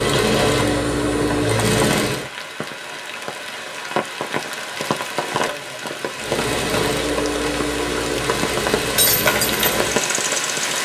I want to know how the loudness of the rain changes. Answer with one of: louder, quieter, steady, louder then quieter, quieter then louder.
louder.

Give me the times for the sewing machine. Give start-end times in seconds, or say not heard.
0.0-2.3, 6.2-10.8.